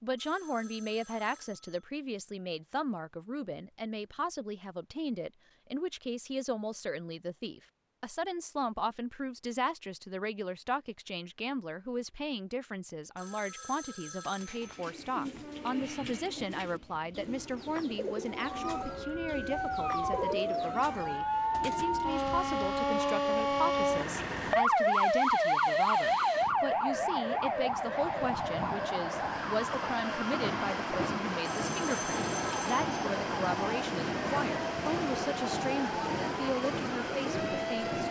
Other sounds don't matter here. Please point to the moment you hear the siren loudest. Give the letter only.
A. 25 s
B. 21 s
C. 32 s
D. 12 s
A.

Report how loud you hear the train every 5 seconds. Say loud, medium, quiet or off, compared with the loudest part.
off, off, off, quiet, quiet, medium, loud, loud.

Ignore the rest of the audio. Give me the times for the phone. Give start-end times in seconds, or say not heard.
0.1-1.9, 13.2-14.8, 31.4-32.9.